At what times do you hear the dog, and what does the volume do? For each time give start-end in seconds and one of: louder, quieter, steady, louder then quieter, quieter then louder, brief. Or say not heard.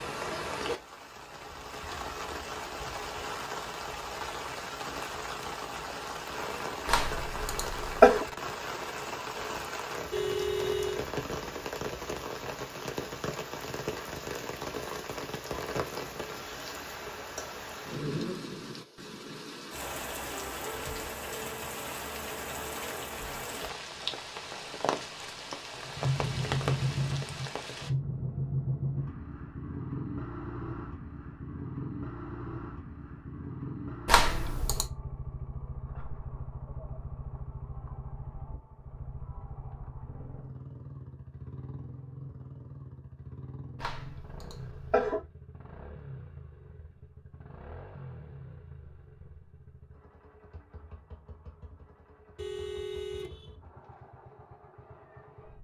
not heard.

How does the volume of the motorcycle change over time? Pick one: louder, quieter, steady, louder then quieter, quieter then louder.
quieter.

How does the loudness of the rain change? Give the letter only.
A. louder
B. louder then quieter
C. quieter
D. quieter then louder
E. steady
E.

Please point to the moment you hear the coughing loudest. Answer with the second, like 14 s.
8 s.